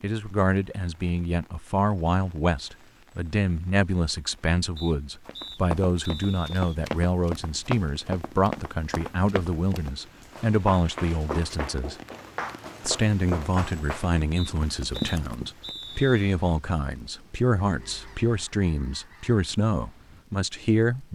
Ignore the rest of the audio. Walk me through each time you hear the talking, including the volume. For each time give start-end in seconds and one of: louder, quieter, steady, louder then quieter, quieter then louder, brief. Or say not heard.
0.0-11.9 steady
12.8-21.1 steady.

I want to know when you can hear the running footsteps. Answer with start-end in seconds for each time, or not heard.
5.2-15.8.